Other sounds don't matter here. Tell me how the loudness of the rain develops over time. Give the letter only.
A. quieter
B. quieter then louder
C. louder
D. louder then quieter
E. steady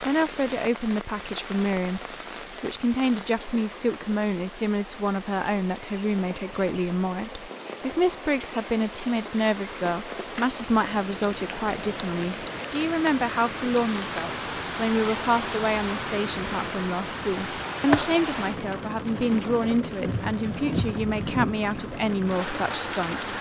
C.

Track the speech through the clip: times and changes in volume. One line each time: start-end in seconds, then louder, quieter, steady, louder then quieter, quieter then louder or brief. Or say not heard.
0.0-23.3 steady.